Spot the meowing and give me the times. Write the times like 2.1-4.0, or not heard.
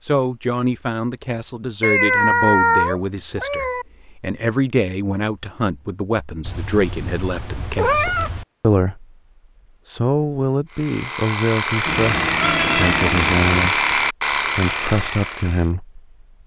1.8-3.9, 6.5-8.4, 11.8-13.4.